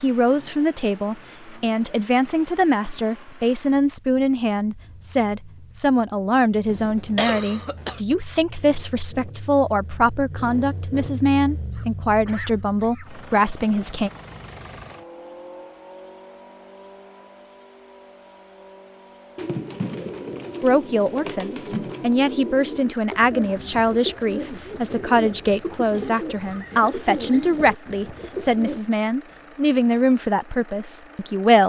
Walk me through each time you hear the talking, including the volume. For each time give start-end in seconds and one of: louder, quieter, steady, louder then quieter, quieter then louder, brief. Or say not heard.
0.0-14.1 steady
20.6-31.6 steady.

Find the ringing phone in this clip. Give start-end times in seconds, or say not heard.
not heard.